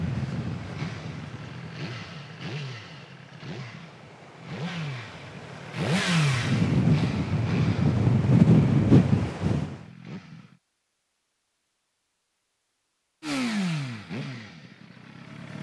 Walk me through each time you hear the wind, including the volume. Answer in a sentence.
The wind can be heard from 0.0 to 9.8 s, getting quieter then louder.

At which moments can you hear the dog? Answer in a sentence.
The dog can't be heard in this clip.